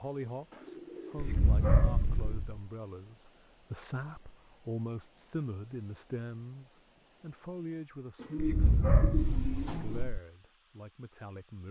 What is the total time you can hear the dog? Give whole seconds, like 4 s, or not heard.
3 s.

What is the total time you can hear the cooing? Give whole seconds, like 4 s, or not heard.
4 s.